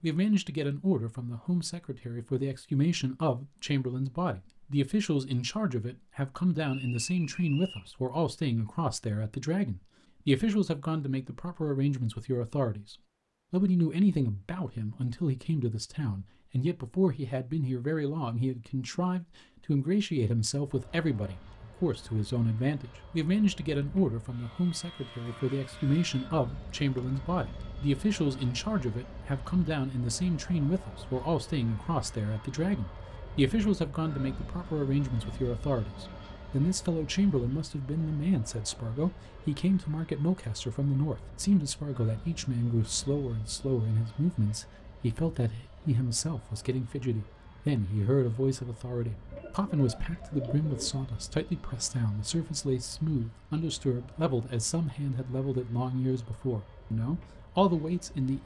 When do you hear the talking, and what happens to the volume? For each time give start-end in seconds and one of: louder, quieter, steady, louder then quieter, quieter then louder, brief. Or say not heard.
0.0-58.4 steady.